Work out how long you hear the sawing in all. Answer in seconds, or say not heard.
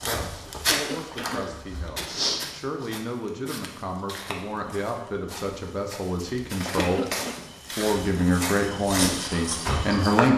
not heard.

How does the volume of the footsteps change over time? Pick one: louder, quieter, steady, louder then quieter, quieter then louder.
quieter then louder.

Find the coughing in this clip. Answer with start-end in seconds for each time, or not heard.
0.7-1.6, 6.8-7.5.